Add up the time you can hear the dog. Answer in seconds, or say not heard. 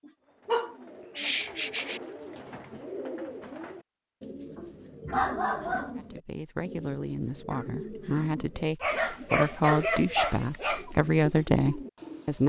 6 s.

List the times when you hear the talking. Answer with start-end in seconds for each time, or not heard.
6.0-12.4.